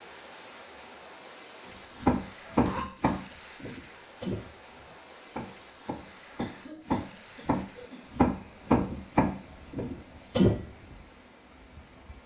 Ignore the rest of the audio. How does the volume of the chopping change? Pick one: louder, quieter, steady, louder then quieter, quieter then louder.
quieter then louder.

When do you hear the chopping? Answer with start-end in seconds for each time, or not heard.
2.0-10.7.